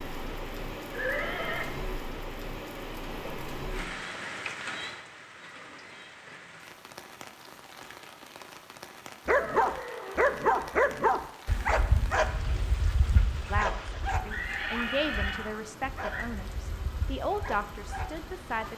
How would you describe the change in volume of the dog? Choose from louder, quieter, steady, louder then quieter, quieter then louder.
quieter.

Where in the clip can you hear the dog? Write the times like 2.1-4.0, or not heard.
9.2-18.7.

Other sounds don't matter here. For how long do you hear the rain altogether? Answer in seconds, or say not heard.
19 s.